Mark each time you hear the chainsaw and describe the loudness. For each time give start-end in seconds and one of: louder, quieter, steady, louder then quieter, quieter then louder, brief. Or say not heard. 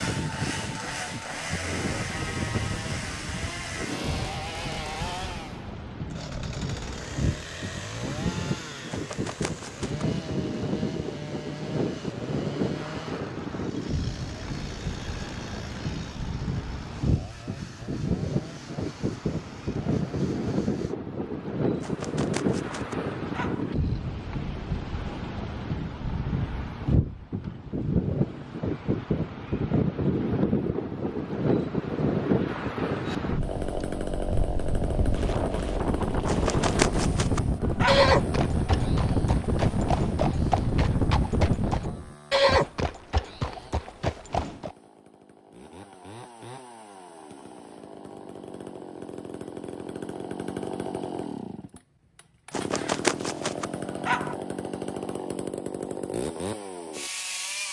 0.0-20.9 quieter
33.0-57.6 quieter then louder.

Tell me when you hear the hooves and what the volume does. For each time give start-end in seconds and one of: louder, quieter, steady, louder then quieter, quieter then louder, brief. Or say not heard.
37.9-44.8 louder then quieter.